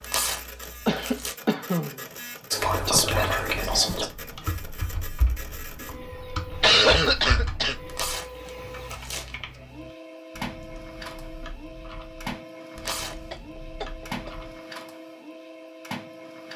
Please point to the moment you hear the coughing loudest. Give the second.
7 s.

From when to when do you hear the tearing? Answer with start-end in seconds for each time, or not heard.
0.0-1.4, 7.8-9.3, 12.8-13.3.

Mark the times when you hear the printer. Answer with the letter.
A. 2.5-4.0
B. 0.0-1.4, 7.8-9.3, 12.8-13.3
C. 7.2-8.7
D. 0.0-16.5
D.